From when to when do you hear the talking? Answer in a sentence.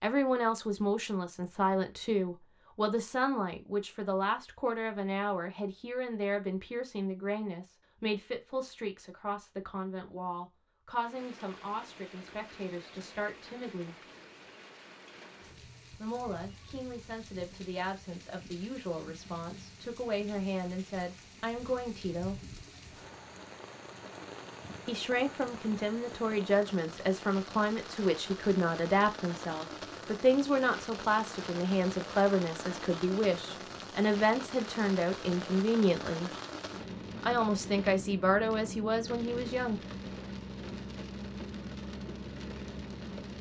You can hear the talking from 0.0 to 13.9 s, from 16.0 to 22.4 s, from 24.9 to 36.3 s and from 37.2 to 39.8 s.